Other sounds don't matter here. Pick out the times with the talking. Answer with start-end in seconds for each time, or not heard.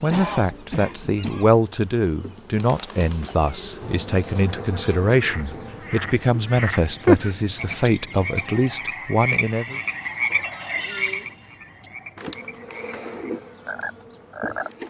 0.0-9.8.